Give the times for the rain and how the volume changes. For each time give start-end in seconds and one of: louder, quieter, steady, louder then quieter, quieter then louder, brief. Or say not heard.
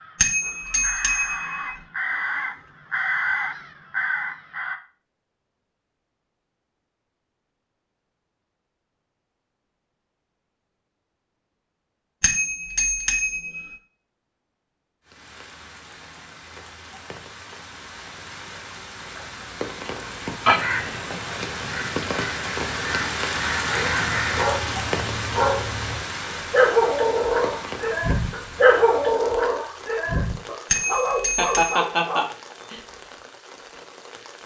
15.1-34.4 louder then quieter.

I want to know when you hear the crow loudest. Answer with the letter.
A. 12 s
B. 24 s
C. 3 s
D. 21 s
D.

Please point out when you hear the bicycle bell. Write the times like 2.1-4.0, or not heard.
0.1-1.8, 12.2-13.8, 30.7-31.8.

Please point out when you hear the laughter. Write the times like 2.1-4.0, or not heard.
31.4-32.8.